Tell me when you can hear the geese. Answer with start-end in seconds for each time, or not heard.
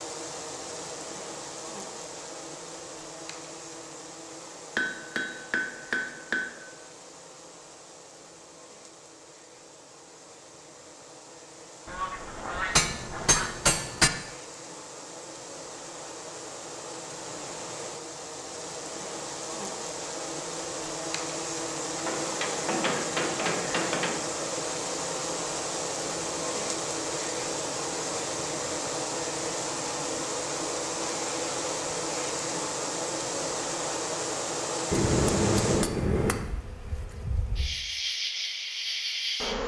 11.8-13.6.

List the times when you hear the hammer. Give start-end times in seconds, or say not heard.
4.8-6.5, 12.8-14.1, 21.9-24.2, 34.9-36.5.